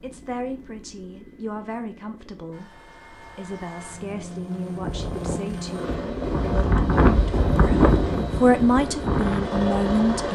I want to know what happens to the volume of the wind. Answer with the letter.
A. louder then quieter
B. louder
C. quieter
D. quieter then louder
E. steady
A.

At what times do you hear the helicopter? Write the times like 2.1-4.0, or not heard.
0.0-10.3.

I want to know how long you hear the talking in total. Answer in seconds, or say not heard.
10 s.